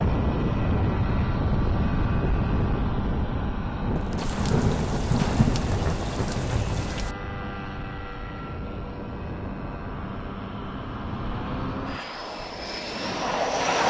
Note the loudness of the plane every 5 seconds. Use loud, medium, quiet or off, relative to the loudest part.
loud, medium, loud.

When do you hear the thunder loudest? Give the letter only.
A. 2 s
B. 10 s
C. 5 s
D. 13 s
C.